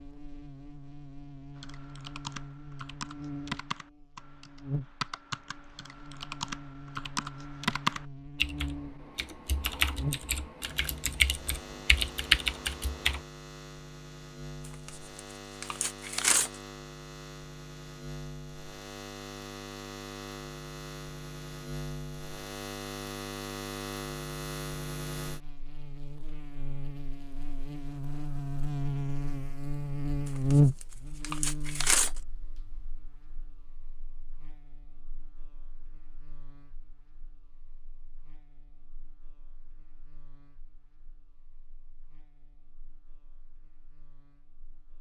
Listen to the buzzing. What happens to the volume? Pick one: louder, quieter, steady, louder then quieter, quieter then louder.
louder then quieter.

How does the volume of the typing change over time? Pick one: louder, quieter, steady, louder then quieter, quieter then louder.
louder.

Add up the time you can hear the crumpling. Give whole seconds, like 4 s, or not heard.
4 s.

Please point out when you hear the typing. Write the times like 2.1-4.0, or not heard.
1.6-13.2.